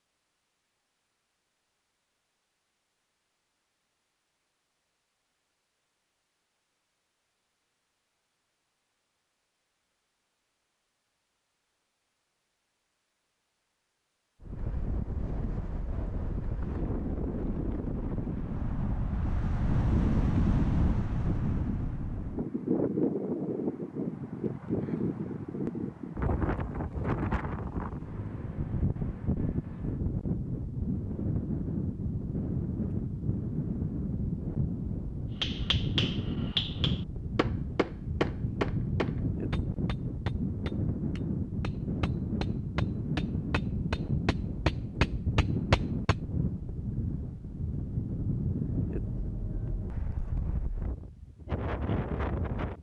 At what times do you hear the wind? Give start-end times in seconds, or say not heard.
14.4-52.7.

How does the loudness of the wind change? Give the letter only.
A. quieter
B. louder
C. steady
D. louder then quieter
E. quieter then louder
C.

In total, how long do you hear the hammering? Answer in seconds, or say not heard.
11 s.